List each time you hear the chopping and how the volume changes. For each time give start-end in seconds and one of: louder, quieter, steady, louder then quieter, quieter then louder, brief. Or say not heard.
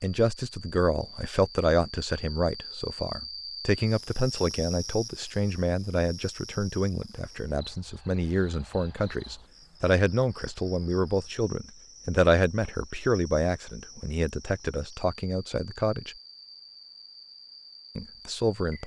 not heard.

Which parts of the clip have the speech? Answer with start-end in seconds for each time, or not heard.
0.0-16.1, 17.9-18.8.